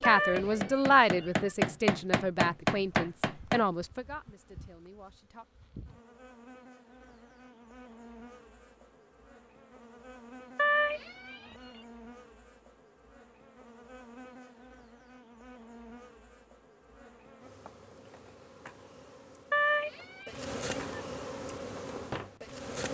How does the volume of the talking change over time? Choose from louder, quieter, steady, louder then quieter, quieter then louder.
quieter.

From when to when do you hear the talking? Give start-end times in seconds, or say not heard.
0.0-5.5.